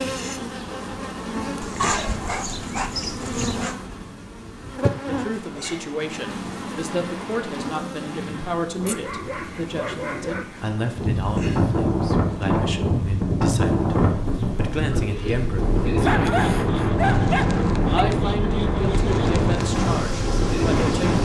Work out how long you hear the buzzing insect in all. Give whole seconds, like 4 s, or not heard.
21 s.